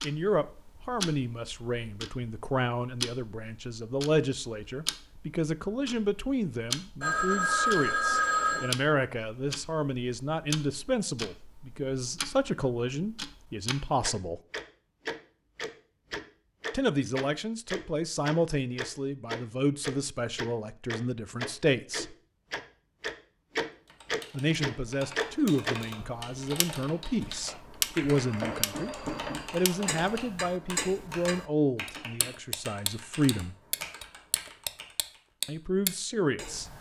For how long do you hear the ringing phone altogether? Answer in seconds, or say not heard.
4 s.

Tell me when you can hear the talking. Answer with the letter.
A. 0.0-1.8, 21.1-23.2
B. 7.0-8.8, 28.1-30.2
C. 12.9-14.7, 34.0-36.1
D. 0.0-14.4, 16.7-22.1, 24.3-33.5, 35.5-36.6
D.